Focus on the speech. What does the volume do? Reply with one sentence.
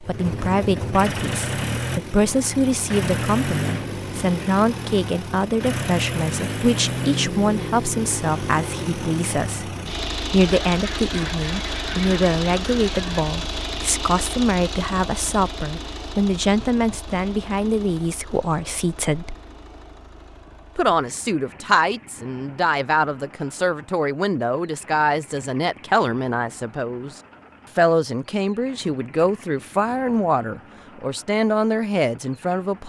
The volume of the speech stays about the same.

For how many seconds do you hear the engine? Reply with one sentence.
The engine can be heard for 33 seconds in total.